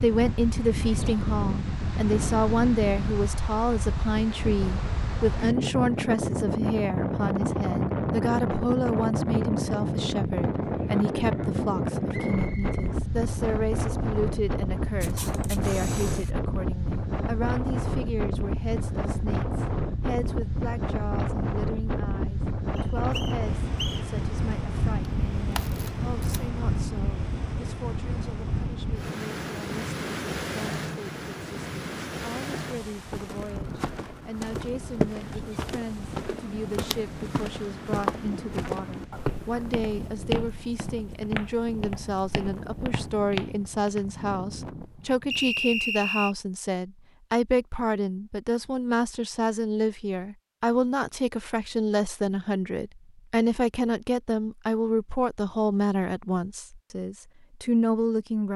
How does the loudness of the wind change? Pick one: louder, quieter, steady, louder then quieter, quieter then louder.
quieter.